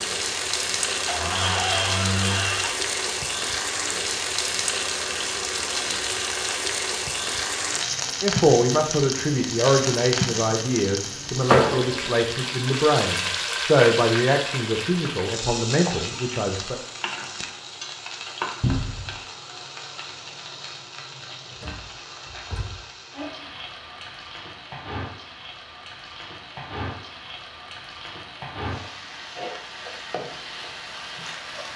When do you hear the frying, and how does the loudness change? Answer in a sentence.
You can hear the frying from 0.0 to 31.7 s, getting quieter.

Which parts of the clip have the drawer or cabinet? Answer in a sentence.
The drawer or cabinet can be heard from 1.1 to 2.8 s, from 18.6 to 19.1 s and from 21.5 to 22.9 s.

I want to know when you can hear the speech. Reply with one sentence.
The speech can be heard from 8.2 to 16.8 s.